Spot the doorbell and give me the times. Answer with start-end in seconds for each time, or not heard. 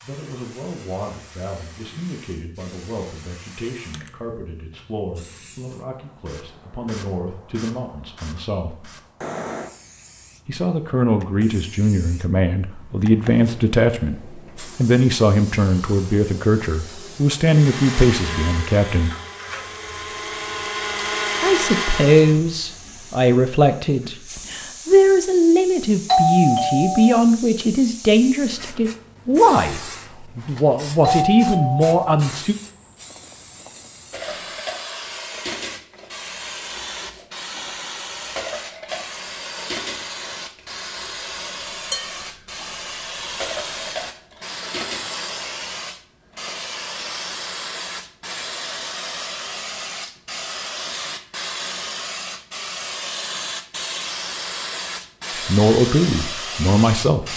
26.1-27.2, 31.0-31.9.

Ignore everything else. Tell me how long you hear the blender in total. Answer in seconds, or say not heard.
5 s.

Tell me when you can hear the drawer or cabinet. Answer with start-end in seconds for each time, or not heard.
not heard.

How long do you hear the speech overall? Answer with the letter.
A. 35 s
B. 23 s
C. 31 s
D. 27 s
C.